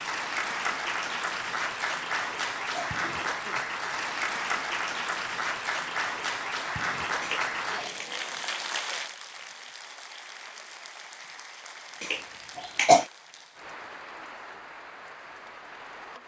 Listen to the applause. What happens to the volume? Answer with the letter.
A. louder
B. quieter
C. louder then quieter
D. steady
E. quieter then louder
B.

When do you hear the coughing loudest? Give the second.
13 s.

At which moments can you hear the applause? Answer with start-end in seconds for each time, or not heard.
0.0-16.2.